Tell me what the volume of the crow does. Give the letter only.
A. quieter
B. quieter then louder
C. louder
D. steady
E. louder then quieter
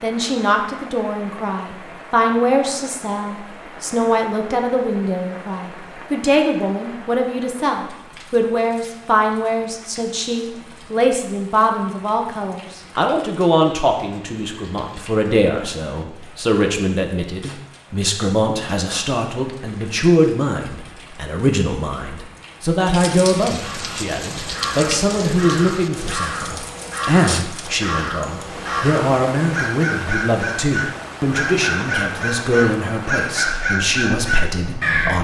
C.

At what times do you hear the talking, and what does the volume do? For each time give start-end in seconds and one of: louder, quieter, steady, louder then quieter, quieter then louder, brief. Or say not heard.
0.0-35.1 steady.